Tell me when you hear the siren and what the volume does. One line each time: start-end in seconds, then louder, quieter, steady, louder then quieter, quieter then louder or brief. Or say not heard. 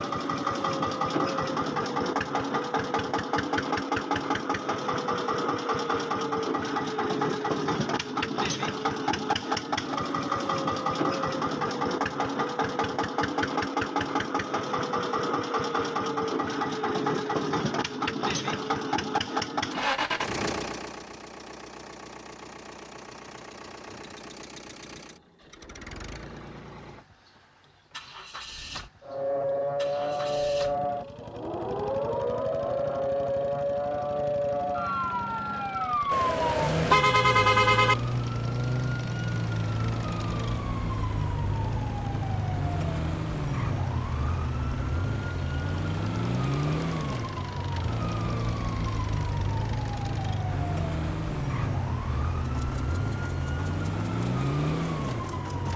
29.0-55.7 steady.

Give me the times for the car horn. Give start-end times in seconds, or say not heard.
36.1-38.0.